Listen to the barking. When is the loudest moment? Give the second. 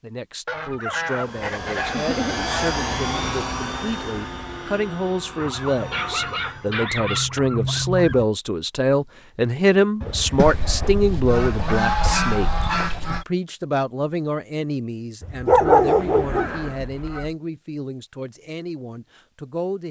16 s.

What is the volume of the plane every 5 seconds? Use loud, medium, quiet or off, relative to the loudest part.
loud, medium, off, off.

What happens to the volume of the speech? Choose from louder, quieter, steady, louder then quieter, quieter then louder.
louder then quieter.